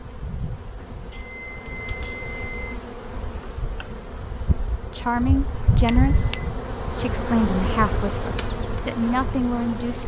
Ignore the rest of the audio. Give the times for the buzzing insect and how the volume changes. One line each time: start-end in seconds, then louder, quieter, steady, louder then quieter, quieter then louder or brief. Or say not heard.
0.0-10.0 louder.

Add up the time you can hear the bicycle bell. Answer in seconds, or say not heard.
2 s.